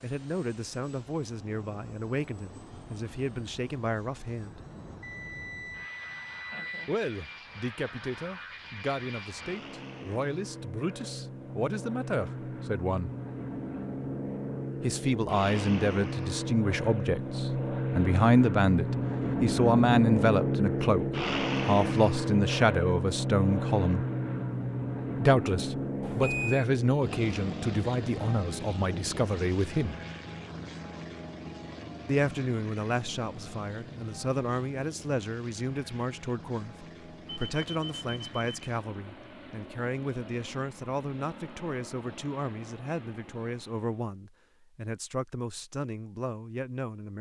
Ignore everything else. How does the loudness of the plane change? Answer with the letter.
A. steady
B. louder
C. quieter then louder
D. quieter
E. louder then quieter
E.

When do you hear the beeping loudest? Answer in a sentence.
The loudest moment of the beeping is at 26 seconds.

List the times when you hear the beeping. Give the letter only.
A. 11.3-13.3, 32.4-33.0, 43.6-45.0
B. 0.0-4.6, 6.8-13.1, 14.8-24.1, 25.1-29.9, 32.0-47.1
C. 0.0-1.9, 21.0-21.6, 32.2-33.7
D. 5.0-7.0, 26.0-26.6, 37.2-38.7
D.